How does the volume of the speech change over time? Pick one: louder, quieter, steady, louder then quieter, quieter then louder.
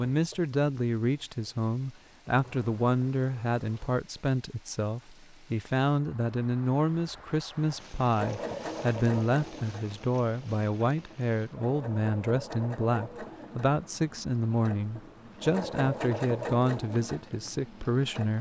steady.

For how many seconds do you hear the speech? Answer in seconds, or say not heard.
18 s.